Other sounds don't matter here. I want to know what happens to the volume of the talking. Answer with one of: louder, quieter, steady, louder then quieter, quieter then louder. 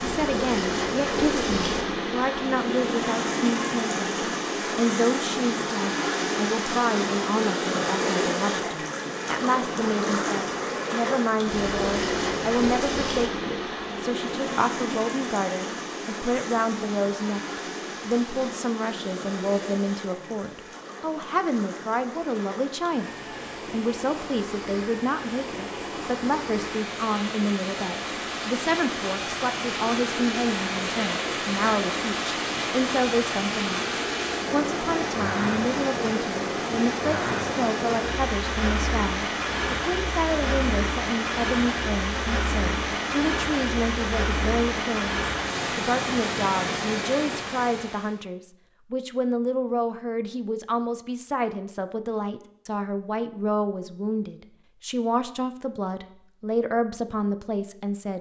steady.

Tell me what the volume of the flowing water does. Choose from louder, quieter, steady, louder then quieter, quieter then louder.
quieter then louder.